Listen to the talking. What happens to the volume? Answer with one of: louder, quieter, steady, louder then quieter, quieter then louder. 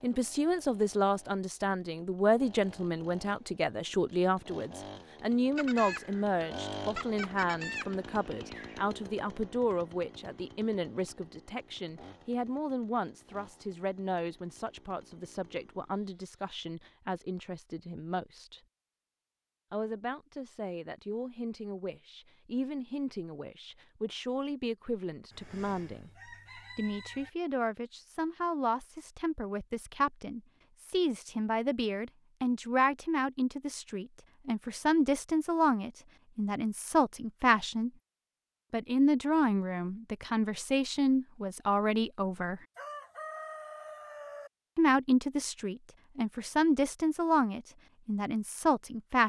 quieter then louder.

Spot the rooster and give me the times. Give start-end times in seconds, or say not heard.
5.5-8.8, 25.3-27.3, 42.8-44.5.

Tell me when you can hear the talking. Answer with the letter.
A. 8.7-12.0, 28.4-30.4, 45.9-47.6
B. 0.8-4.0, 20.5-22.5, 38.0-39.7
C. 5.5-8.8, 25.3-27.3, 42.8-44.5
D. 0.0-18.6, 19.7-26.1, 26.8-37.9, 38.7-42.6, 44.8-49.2
D.